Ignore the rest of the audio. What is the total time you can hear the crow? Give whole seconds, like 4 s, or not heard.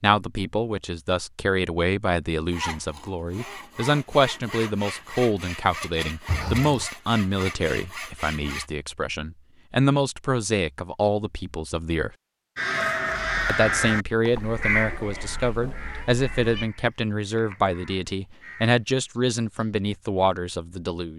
7 s.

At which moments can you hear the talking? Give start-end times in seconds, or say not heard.
0.0-12.1, 13.4-21.1.